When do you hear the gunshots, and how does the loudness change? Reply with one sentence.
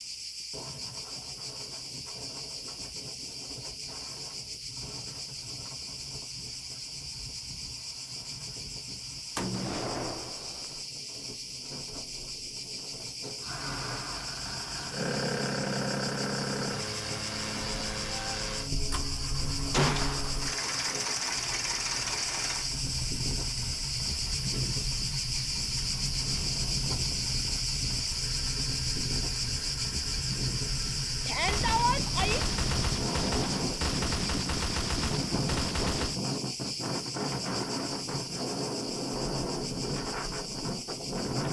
You can hear the gunshots briefly from 9.3 to 10.8 s; briefly from 19.7 to 20.4 s; and from 31.4 to 36.2 s, at a steady volume.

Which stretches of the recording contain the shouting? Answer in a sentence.
The shouting can be heard from 31.2 to 32.4 s.